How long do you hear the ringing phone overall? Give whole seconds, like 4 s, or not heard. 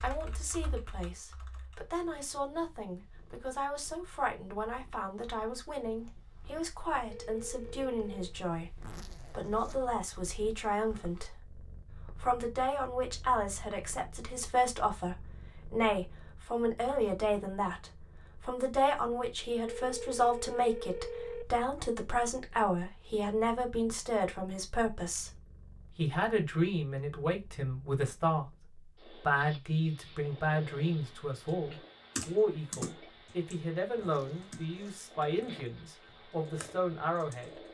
3 s.